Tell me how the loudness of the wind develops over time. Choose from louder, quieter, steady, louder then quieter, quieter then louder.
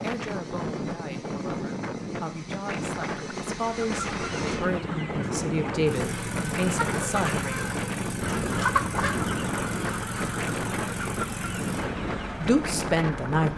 steady.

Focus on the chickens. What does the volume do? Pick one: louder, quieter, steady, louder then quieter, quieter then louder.
louder then quieter.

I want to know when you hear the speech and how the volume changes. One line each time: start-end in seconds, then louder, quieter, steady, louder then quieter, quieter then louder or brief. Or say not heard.
0.0-7.7 louder
12.4-13.5 brief.